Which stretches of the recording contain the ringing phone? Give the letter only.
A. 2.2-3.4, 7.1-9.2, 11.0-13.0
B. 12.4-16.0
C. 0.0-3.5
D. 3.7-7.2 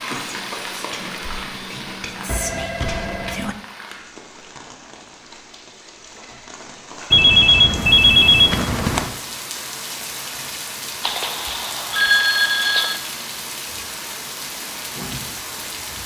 A.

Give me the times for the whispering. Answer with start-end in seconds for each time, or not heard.
0.0-3.5.